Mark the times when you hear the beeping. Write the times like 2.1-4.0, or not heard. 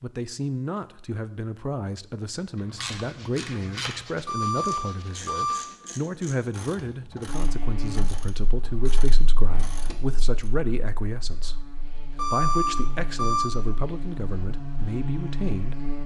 4.2-5.7, 12.2-13.5.